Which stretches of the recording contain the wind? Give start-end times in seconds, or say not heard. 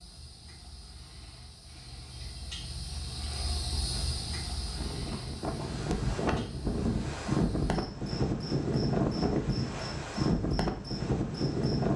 4.5-11.9.